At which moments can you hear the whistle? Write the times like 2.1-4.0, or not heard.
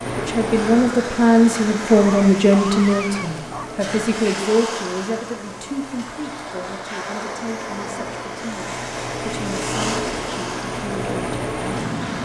not heard.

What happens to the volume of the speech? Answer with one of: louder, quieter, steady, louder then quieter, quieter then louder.
quieter.